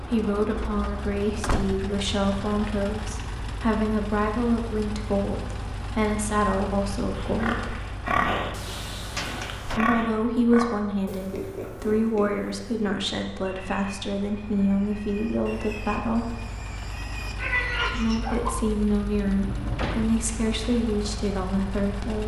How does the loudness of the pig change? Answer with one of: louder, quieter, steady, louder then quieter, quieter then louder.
quieter then louder.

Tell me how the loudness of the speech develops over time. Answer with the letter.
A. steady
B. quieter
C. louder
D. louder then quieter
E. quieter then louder
A.